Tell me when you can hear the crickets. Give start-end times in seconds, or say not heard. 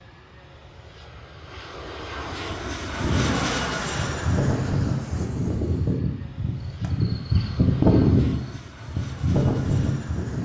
3.0-10.4.